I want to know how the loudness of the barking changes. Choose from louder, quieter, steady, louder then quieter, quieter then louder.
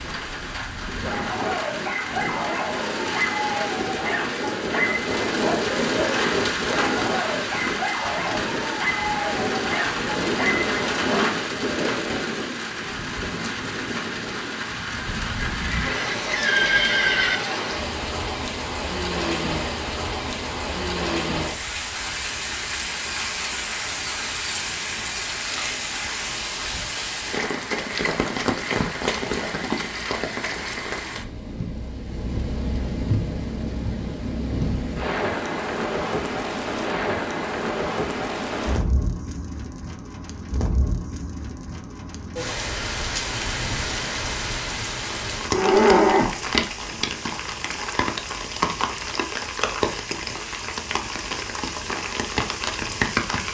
steady.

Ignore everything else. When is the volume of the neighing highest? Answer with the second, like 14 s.
46 s.